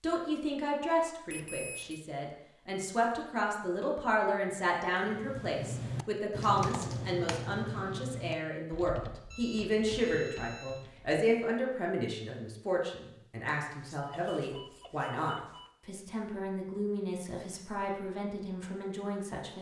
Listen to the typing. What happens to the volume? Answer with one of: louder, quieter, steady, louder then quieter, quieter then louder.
quieter.